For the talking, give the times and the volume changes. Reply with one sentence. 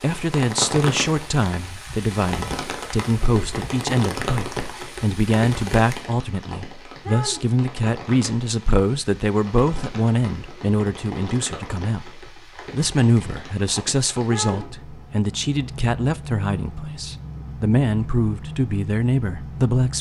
The talking can be heard from 0.0 to 19.9 s, at a steady volume.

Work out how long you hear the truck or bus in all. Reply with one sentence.
You can't hear the truck or bus here.